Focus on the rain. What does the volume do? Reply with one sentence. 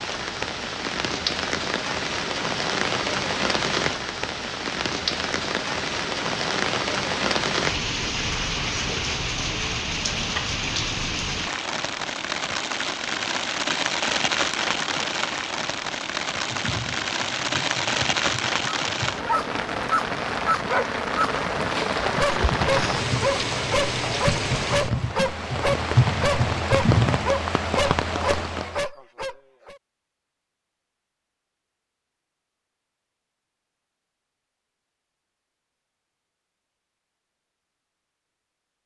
The loudness of the rain stays about the same.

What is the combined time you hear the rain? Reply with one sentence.
The rain can be heard for 29 seconds in total.